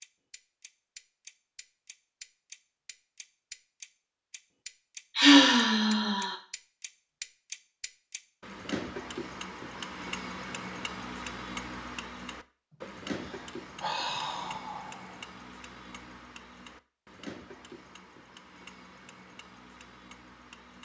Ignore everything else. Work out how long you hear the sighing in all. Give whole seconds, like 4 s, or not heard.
4 s.